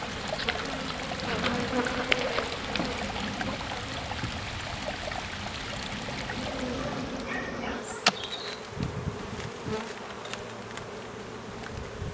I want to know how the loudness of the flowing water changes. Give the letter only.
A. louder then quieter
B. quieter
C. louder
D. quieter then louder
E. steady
E.